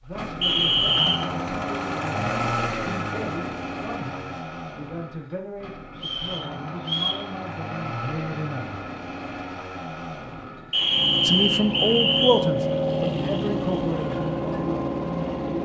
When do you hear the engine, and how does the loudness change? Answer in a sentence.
The engine can be heard from 0.0 to 15.5 s, getting quieter then louder.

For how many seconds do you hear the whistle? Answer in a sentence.
You can hear the whistle for 4 seconds altogether.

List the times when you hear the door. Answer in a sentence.
The door can't be heard in this clip.